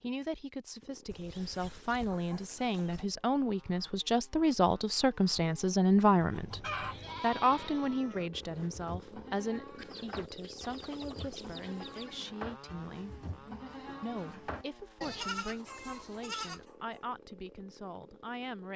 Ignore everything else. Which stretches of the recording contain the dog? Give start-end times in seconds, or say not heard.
not heard.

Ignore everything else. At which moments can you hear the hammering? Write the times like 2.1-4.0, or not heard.
not heard.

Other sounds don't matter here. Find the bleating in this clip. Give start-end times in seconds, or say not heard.
6.3-16.6.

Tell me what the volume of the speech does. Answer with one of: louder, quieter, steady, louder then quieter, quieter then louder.
louder then quieter.